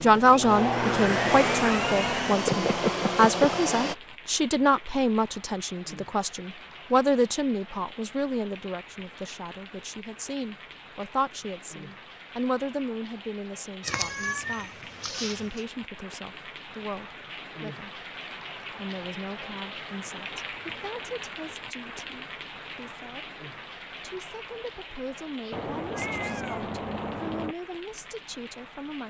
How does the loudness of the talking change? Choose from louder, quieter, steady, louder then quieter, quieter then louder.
quieter.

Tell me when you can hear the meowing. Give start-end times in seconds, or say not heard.
1.7-3.2, 13.8-15.3, 25.5-27.6.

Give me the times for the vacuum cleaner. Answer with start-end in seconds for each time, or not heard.
0.0-4.0.